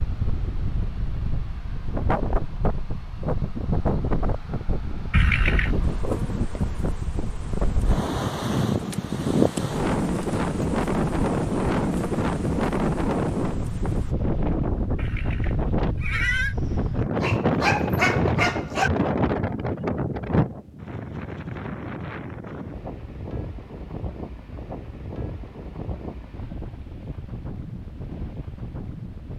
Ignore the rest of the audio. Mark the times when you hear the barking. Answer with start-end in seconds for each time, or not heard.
17.1-18.9.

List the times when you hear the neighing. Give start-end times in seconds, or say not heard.
5.1-5.9, 14.9-16.6.